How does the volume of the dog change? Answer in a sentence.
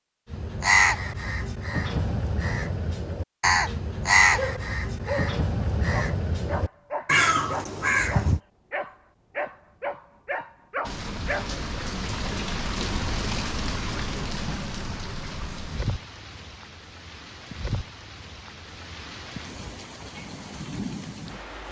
The loudness of the dog stays about the same.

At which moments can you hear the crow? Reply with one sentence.
The crow can be heard from 0.3 to 8.4 s.